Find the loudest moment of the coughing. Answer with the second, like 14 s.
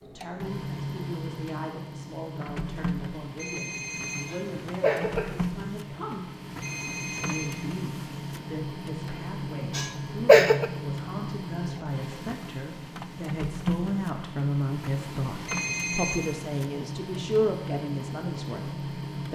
10 s.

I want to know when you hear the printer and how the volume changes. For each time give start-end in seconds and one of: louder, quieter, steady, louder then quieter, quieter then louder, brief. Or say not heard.
0.0-19.2 steady.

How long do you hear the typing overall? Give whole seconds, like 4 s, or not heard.
not heard.